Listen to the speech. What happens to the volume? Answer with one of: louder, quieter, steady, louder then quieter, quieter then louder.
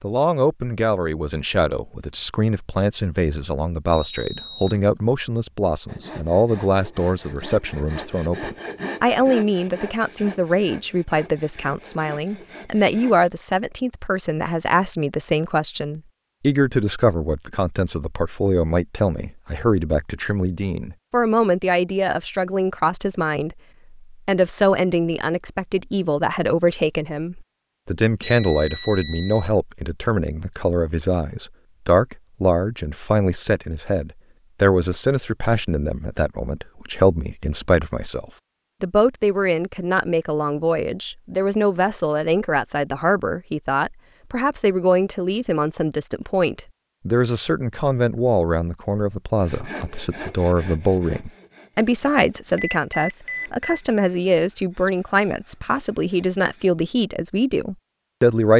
steady.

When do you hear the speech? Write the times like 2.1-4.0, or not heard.
0.0-58.5.